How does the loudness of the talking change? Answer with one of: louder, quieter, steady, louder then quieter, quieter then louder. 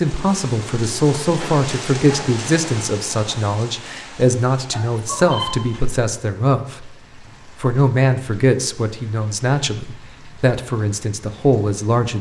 steady.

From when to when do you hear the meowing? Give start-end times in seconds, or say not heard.
4.7-5.5.